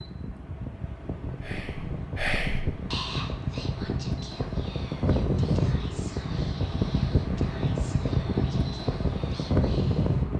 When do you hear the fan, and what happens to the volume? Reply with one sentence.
You can hear the fan from 0.0 to 10.3 s, getting louder.